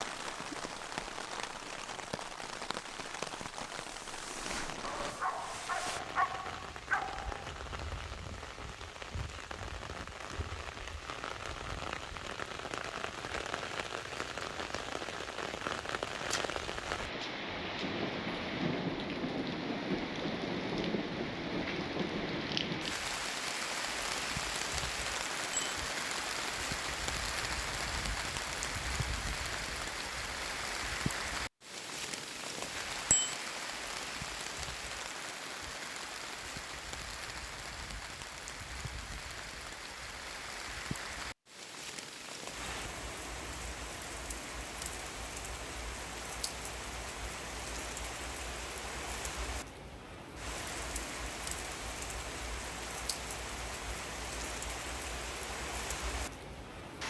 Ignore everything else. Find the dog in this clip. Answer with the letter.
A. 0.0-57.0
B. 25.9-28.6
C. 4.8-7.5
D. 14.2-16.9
C.